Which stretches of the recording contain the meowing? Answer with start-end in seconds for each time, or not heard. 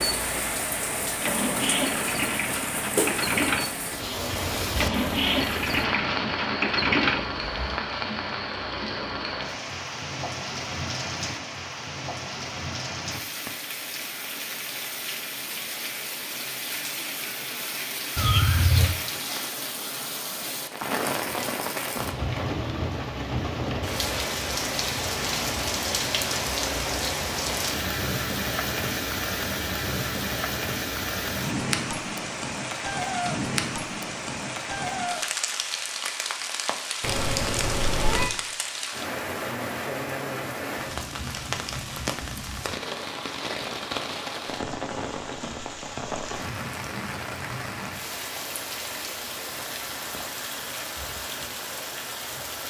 18.1-18.9, 37.0-38.4.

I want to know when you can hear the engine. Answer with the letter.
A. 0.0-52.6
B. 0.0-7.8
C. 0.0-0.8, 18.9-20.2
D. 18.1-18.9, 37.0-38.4
B.